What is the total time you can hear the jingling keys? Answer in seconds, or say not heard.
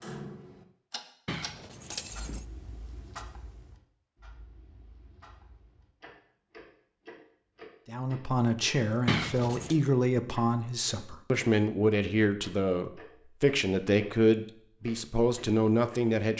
2 s.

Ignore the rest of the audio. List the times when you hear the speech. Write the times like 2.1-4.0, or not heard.
7.8-16.3.